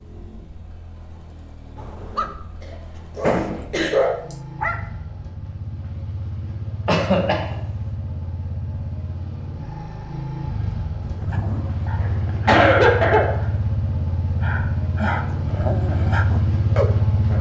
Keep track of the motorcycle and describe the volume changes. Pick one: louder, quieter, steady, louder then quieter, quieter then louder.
louder.